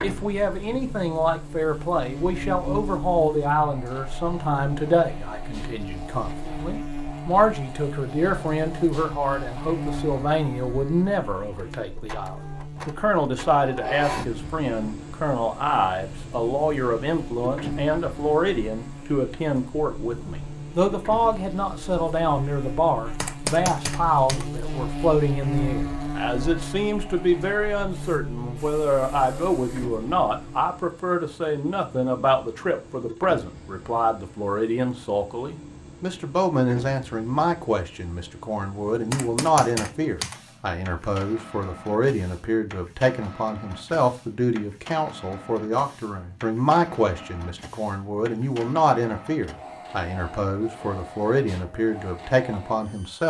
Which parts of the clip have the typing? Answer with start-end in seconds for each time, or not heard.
23.2-24.5, 38.9-40.4.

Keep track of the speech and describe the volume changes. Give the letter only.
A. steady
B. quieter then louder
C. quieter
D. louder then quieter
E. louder
A.